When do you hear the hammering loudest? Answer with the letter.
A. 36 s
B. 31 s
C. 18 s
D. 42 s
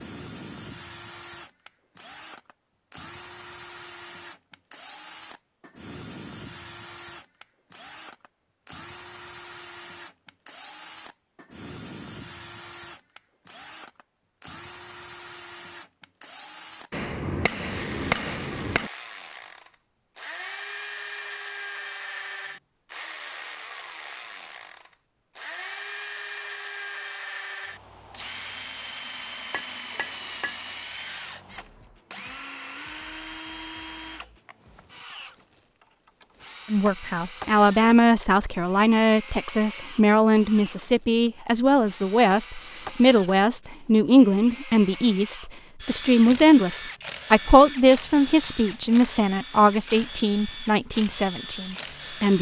C.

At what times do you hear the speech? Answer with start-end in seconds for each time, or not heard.
36.7-52.3.